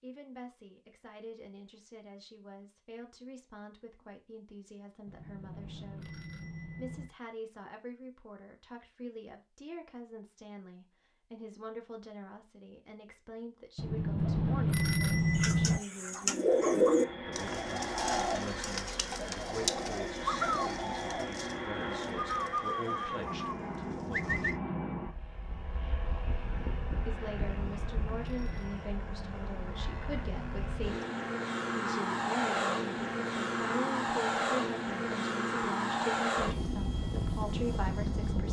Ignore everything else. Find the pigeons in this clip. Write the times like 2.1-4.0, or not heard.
15.3-24.6.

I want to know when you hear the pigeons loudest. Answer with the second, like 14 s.
17 s.